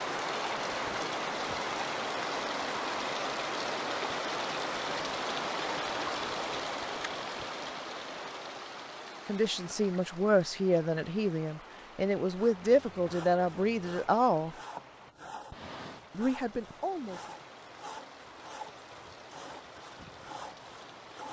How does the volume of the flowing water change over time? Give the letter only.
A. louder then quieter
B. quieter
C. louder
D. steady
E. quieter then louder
B.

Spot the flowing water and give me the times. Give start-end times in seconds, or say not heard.
0.0-21.2.